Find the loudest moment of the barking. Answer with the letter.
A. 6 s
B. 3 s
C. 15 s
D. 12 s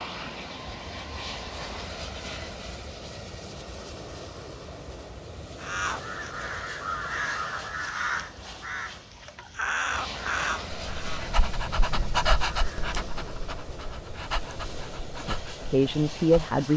D.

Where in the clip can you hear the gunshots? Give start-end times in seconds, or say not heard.
not heard.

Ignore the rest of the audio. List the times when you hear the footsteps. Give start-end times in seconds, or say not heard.
not heard.